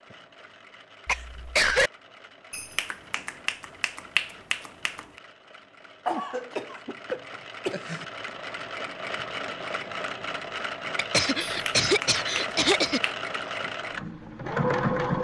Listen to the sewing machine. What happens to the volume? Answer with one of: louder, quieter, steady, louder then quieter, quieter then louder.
louder.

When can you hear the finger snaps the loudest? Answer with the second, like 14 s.
4 s.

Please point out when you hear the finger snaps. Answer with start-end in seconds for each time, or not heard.
2.5-5.2, 11.4-13.2.